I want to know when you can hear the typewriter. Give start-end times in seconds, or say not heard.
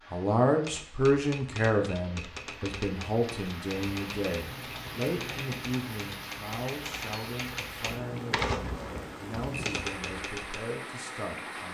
0.6-10.6.